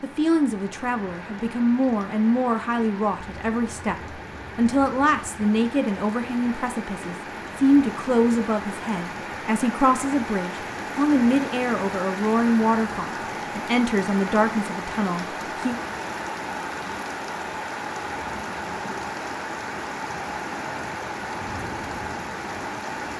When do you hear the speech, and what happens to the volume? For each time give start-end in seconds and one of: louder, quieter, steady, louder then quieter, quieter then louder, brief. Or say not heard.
0.0-15.8 steady.